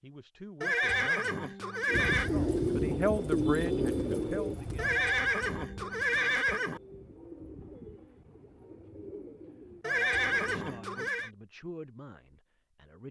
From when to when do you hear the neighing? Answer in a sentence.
You can hear the neighing from 0.6 to 2.3 s, from 4.8 to 6.8 s and from 9.8 to 11.3 s.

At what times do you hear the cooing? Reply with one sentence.
The cooing can be heard from 1.9 to 10.6 s.